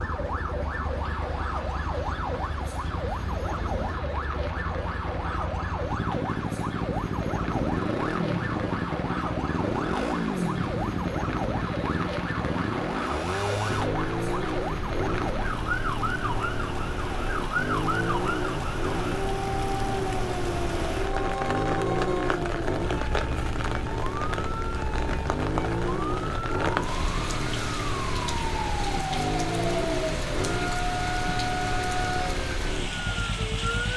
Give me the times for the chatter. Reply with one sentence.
The chatter can't be heard in this clip.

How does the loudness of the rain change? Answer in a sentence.
The volume of the rain goes up.